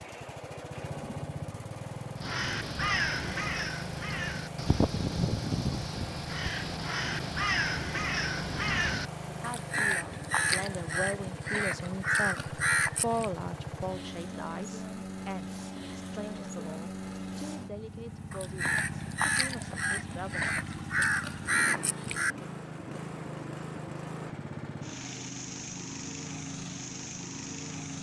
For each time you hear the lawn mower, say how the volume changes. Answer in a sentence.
You can hear the lawn mower from 0.0 to 27.9 s, at a steady volume.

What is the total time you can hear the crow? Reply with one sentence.
The crow can be heard for 15 seconds in total.